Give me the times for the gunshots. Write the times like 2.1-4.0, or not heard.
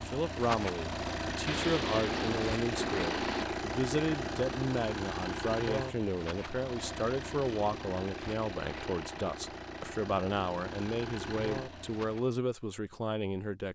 1.4-3.5.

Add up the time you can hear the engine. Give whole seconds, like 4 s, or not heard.
12 s.